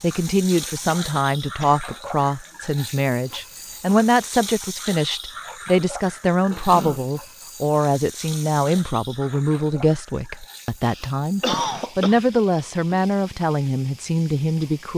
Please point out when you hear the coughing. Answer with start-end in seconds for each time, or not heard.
0.8-2.0, 6.5-7.2, 10.8-12.2.